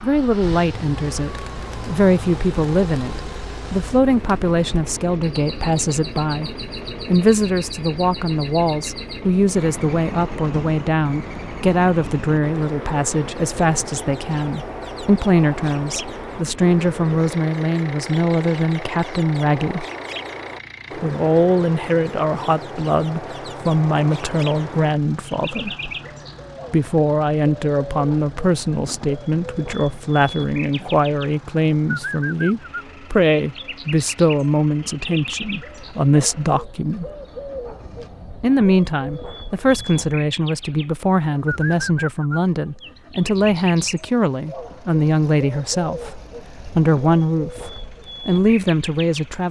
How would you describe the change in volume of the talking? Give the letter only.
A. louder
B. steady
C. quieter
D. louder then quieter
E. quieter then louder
B.